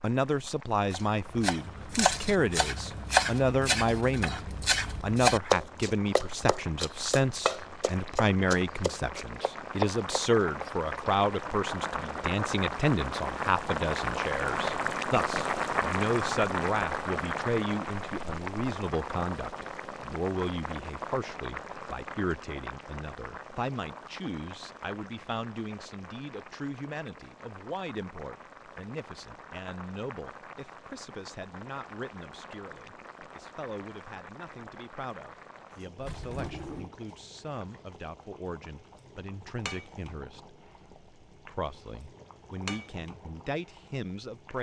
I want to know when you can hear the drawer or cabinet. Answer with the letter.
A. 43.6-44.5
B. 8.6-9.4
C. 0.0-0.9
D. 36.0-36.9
D.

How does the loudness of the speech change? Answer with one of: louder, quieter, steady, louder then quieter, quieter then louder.
quieter.